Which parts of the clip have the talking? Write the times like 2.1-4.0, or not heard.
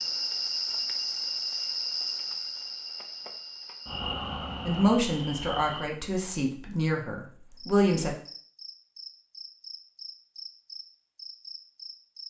4.7-8.2.